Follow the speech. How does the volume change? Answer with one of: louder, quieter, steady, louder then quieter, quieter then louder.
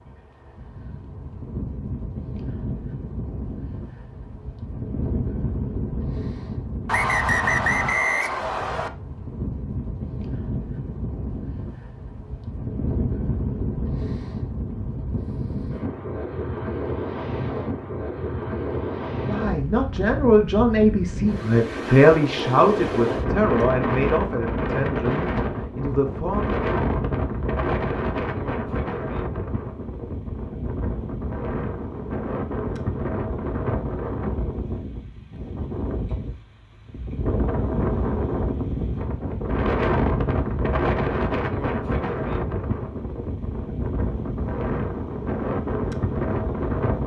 quieter.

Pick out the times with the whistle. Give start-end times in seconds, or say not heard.
6.8-8.9.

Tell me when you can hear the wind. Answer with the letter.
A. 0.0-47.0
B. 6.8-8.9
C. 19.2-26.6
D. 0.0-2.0
A.